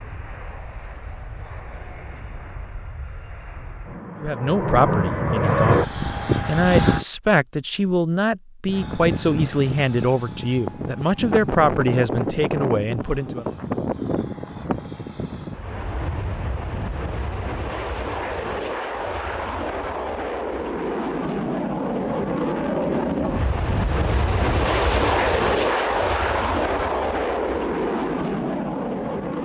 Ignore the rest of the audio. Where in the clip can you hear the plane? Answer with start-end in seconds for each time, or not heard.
0.0-7.0, 8.7-29.4.